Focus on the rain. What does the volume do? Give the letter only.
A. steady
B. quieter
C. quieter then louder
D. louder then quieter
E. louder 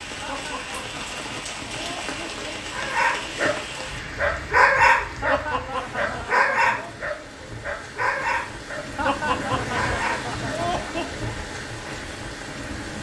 C.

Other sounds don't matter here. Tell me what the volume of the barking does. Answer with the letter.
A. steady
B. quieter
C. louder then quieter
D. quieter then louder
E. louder
C.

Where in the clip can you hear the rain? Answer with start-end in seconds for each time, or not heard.
0.0-12.9.